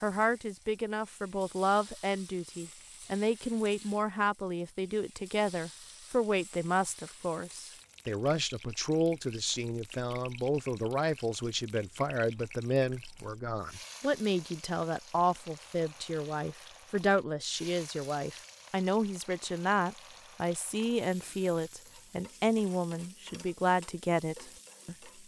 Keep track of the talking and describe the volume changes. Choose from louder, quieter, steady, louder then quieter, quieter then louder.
steady.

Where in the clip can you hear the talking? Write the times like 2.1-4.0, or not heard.
0.0-24.9.